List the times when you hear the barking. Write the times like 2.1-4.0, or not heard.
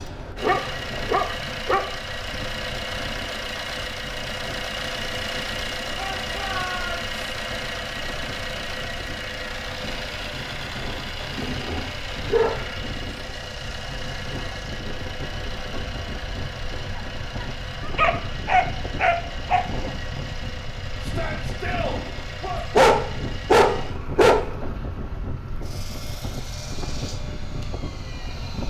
0.4-1.9, 11.2-12.6, 16.9-19.6, 22.8-24.4.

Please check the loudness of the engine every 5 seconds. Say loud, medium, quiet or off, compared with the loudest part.
loud, loud, loud, medium, medium, medium.